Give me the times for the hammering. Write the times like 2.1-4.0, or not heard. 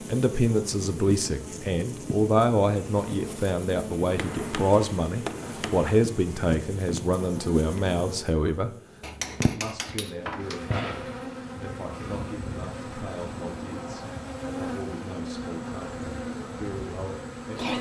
4.2-6.0, 9.0-10.8.